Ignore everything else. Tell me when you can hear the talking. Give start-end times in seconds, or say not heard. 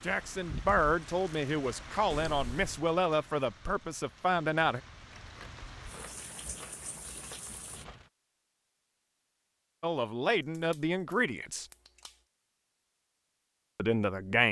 0.0-4.8, 9.8-11.7, 13.8-14.4.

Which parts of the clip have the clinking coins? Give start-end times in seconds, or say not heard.
not heard.